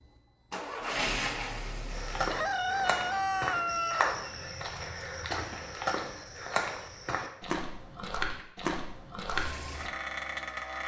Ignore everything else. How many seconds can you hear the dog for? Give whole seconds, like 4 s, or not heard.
not heard.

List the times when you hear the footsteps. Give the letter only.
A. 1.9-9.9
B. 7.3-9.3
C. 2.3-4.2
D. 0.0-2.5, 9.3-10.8
A.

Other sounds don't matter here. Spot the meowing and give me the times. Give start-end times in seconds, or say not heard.
not heard.